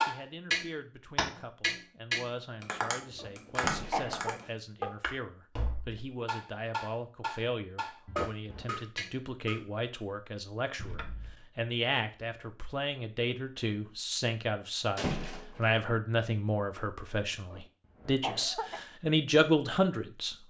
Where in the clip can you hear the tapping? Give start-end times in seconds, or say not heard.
0.0-9.6.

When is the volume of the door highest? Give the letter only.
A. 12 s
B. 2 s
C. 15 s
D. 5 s
C.